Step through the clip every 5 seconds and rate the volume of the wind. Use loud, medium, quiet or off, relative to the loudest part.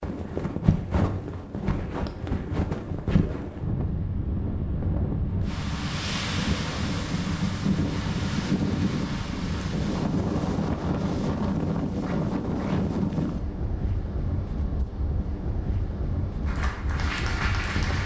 loud, loud, loud, medium.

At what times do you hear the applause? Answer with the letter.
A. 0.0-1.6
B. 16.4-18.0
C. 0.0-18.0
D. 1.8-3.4
B.